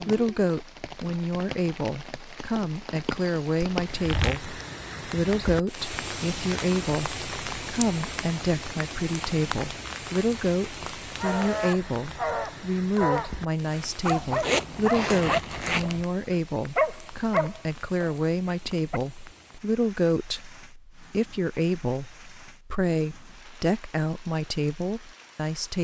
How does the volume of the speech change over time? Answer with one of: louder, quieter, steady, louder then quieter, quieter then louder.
steady.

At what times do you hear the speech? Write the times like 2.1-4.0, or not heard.
0.0-25.7.